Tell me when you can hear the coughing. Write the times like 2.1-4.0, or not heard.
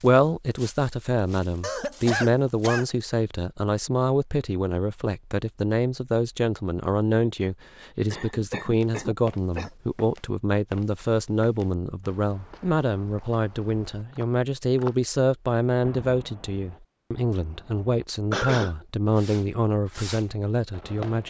1.6-2.9, 8.1-9.7, 18.3-18.8.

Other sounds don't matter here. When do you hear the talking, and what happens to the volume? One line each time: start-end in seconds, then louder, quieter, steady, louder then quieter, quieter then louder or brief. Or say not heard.
0.0-21.2 steady.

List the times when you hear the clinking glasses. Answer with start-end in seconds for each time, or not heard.
not heard.